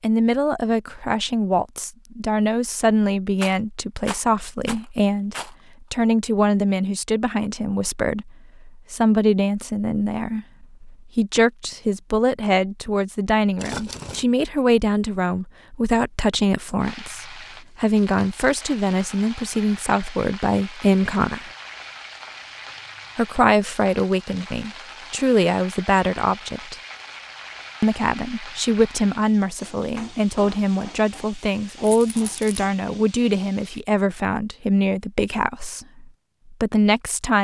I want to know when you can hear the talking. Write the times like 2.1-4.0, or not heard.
0.0-21.5, 23.1-26.8, 27.8-37.3.